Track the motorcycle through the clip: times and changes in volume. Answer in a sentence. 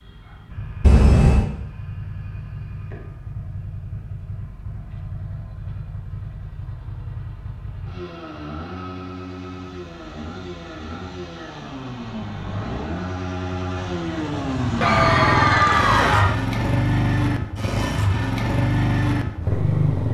The motorcycle can be heard from 0.0 to 20.0 s, getting louder.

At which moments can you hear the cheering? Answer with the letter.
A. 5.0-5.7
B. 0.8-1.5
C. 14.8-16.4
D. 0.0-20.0
C.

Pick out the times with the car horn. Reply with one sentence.
The car horn can be heard from 0.8 to 1.5 s.